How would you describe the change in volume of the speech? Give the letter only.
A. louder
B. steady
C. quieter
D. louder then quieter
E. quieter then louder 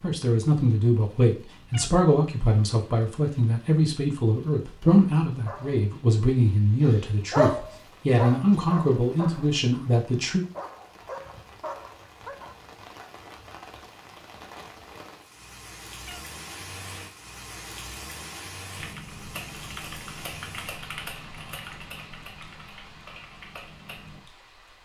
B.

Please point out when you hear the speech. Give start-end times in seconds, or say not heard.
0.0-10.4.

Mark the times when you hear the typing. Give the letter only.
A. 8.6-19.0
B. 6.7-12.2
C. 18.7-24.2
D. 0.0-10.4
C.